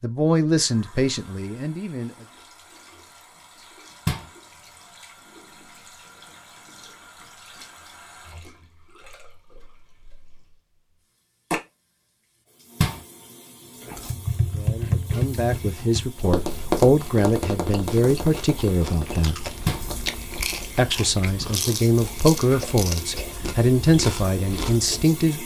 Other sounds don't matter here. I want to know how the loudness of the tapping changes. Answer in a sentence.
The volume of the tapping goes down.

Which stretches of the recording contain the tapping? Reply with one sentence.
You can hear the tapping from 14.1 to 20.8 s.